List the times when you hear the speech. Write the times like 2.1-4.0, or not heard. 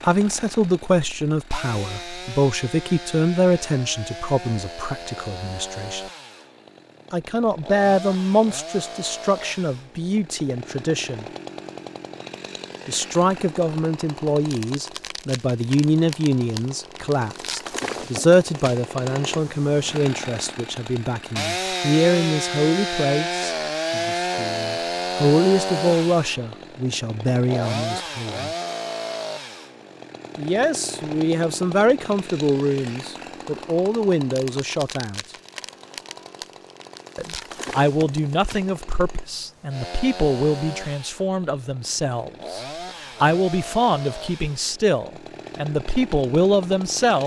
0.0-6.0, 7.1-11.2, 12.8-28.5, 30.4-35.2, 37.1-47.2.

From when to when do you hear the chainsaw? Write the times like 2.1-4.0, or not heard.
0.0-47.2.